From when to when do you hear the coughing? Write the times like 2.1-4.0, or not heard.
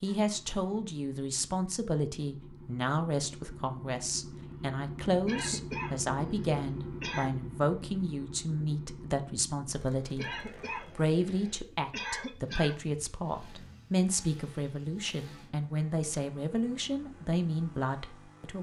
5.2-7.3, 10.2-12.8.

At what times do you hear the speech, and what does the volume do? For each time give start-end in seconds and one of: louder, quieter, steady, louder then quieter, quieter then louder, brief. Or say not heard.
0.0-10.2 steady
10.8-18.5 steady.